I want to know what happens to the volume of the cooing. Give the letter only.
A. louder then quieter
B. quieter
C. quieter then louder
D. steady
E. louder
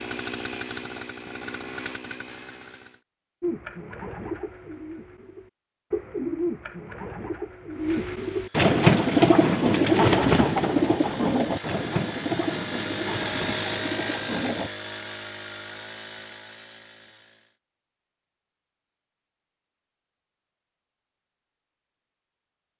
A.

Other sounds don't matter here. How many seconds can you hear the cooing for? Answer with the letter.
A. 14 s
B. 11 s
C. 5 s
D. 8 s
B.